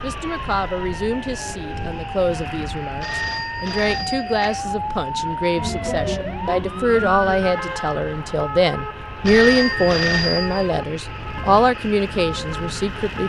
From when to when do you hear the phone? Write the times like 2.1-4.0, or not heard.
3.0-4.6, 9.2-10.7.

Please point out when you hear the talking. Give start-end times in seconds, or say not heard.
0.0-13.2.